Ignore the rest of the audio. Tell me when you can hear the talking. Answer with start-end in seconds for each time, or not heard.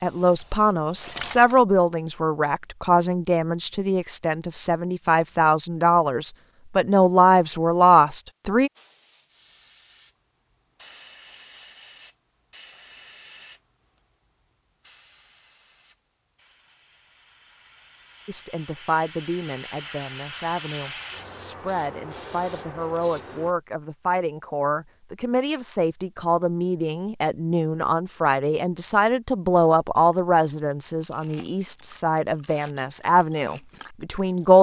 0.0-8.7, 18.2-34.5.